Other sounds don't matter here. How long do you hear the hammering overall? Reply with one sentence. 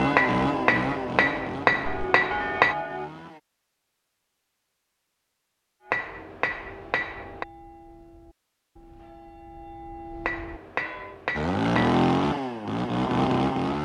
The hammering can be heard for 6 seconds in total.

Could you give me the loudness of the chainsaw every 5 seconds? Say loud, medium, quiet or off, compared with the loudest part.
medium, off, loud.